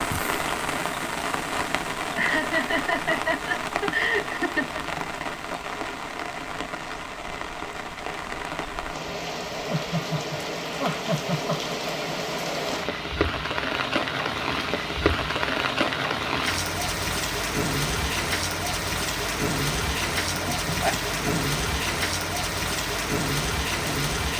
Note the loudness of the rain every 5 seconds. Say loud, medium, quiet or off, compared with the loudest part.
loud, medium, loud, loud, loud.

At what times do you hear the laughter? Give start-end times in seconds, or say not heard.
2.1-4.8, 9.7-11.9, 20.3-21.4.